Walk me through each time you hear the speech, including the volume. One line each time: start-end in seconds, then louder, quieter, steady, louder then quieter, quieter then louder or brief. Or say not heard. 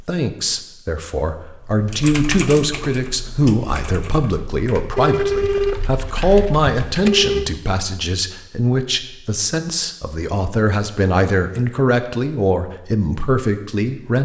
0.0-14.2 steady.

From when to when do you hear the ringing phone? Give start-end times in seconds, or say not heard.
5.0-7.5.